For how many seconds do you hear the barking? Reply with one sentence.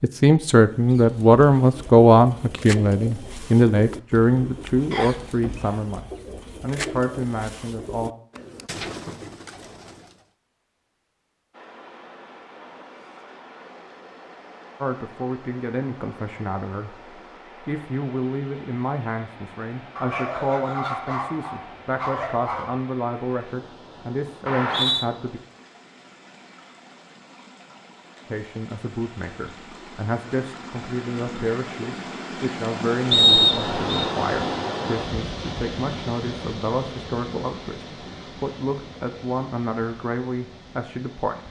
You can hear the barking for 3 seconds altogether.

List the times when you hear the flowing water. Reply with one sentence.
You can hear the flowing water from 11.5 to 41.4 s.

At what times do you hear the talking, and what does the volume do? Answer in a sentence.
You can hear the talking from 0.0 to 8.1 s, getting quieter; from 14.8 to 25.4 s, at a steady volume; and from 28.2 to 41.4 s, at a steady volume.